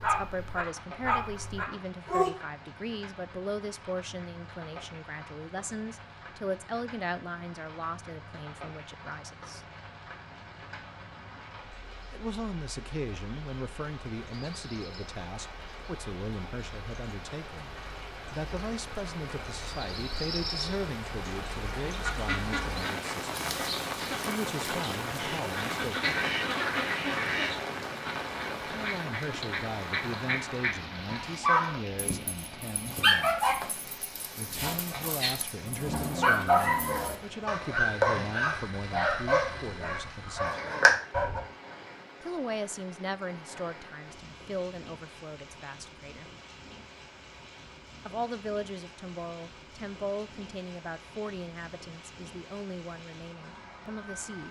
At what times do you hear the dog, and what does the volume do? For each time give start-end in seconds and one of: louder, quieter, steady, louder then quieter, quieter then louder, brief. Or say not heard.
0.0-2.3 brief
31.1-41.4 quieter then louder.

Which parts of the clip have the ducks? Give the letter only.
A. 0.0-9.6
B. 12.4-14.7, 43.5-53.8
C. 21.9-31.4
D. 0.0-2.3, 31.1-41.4
C.